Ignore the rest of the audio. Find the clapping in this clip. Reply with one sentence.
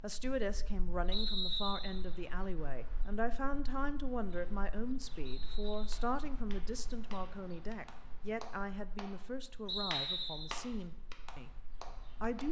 You can hear the clapping from 5.9 to 9.2 s and from 9.9 to 12.4 s.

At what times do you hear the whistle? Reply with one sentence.
The whistle can be heard from 1.1 to 1.9 s, from 5.2 to 5.9 s and from 9.7 to 10.6 s.